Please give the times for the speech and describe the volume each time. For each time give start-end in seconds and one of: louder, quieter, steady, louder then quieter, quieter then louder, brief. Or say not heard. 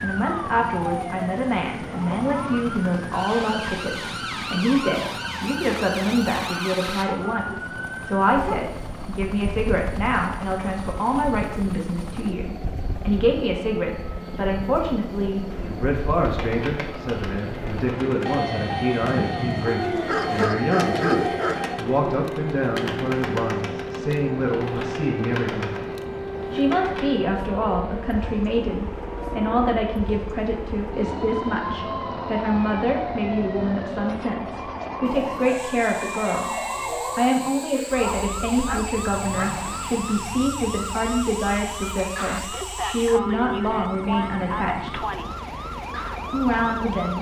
0.0-25.8 steady
26.5-36.5 steady
37.1-45.0 steady
46.3-47.1 brief.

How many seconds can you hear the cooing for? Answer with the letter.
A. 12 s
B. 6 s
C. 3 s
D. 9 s
A.